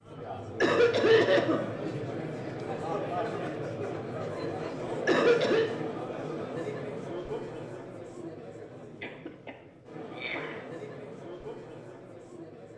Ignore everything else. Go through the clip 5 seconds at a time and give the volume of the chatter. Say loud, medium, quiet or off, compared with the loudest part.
loud, loud, medium.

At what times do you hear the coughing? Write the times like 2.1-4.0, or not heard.
0.6-1.6, 5.0-5.7, 9.0-10.7.